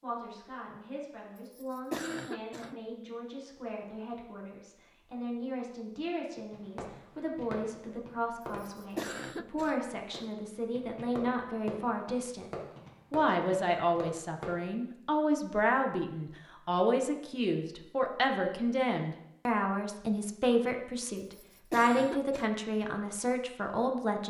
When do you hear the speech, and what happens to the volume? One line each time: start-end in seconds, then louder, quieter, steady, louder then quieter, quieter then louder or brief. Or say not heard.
0.0-24.2 louder.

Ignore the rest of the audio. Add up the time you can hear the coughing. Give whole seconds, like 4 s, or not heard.
4 s.